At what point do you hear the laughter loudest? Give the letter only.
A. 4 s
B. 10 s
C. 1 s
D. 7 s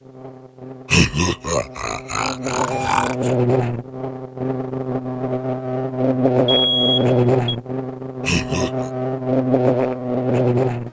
C.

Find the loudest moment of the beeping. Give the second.
7 s.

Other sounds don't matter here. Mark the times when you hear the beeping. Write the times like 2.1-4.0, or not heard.
2.5-3.1, 6.5-7.5.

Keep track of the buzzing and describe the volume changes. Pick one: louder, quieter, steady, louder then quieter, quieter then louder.
louder.